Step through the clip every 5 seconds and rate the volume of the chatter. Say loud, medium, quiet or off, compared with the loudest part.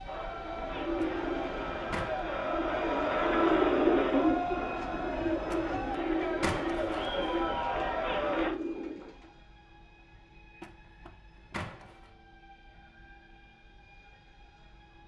loud, loud, off.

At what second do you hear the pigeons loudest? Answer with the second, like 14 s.
4 s.